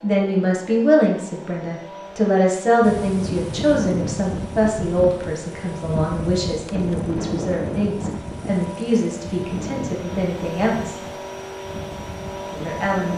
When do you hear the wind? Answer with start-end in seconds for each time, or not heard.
2.8-13.1.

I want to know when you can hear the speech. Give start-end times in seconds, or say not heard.
0.0-11.0, 12.6-13.1.